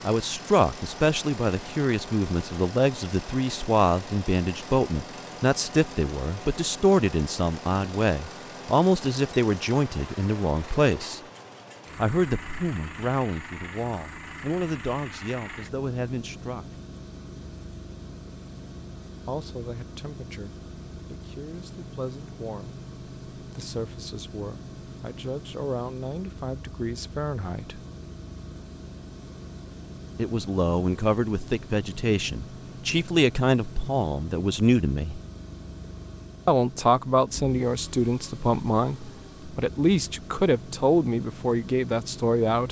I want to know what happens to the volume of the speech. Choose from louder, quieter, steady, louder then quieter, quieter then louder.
quieter then louder.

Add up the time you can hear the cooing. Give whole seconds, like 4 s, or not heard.
not heard.